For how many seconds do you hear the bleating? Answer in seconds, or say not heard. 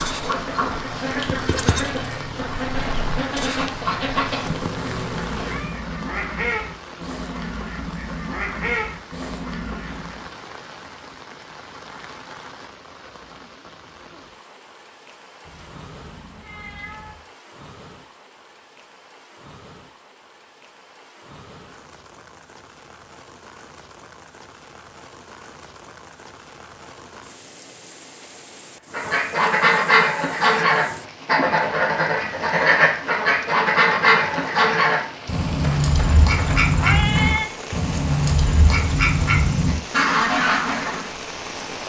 5 s.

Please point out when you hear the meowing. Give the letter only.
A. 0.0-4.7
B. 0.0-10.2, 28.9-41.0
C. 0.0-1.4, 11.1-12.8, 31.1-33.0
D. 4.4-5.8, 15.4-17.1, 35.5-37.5
D.